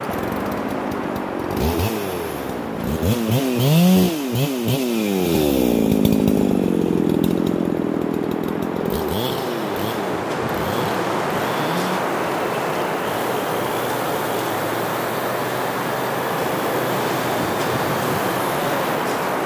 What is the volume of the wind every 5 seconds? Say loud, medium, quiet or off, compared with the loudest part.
medium, medium, loud, loud.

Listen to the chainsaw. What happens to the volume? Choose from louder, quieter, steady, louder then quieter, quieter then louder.
quieter.